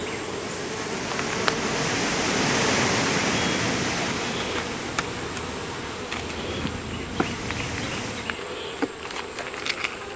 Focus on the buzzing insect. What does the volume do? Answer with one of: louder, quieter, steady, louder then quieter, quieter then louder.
steady.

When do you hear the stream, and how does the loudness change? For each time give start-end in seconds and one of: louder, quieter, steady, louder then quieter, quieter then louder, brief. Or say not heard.
0.0-8.3 louder then quieter.